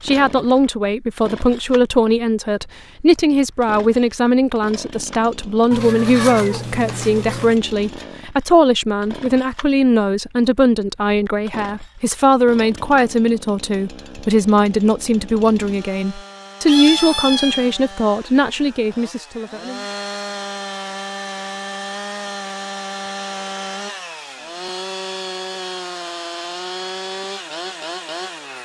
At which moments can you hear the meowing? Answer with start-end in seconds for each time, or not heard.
5.7-7.6, 16.6-17.7.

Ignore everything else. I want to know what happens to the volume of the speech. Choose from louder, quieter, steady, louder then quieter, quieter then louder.
steady.